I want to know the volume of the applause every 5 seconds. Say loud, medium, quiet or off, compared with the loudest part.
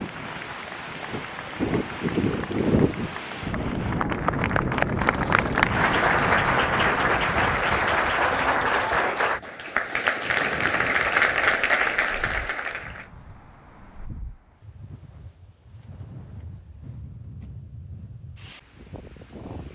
medium, loud, loud, off.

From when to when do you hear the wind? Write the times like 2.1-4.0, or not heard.
0.0-19.7.